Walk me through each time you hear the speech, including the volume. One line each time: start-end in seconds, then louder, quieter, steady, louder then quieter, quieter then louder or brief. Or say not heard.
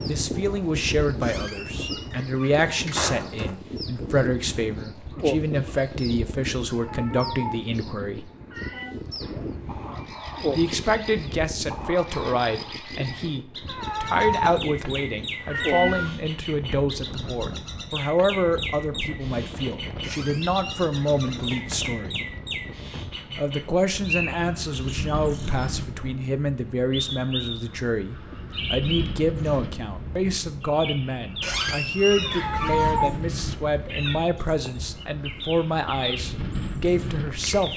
0.0-8.3 steady
10.5-22.2 steady
23.4-37.7 steady.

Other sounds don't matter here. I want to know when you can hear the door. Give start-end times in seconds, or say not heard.
1.2-3.5, 20.0-21.7, 31.4-33.0.